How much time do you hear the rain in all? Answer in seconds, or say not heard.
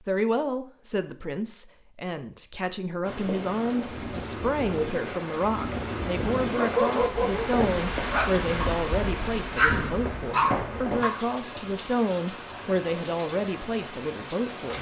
12 s.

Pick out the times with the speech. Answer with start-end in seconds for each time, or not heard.
0.0-14.7.